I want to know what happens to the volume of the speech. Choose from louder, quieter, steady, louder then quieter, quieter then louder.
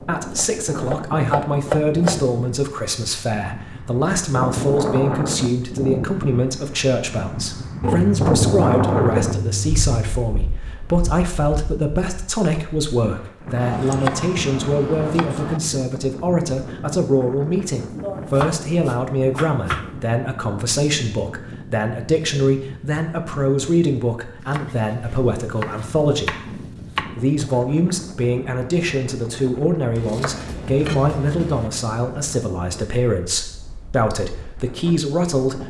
steady.